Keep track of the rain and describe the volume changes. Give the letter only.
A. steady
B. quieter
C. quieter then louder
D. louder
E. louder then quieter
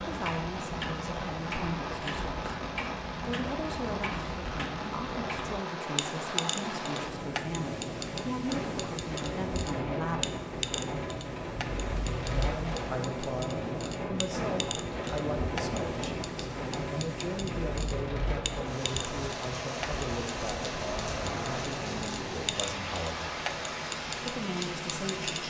A.